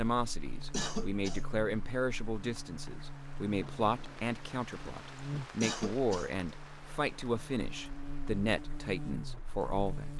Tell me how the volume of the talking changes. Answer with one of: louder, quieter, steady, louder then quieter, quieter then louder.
steady.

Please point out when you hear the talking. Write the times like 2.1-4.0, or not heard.
0.0-10.1.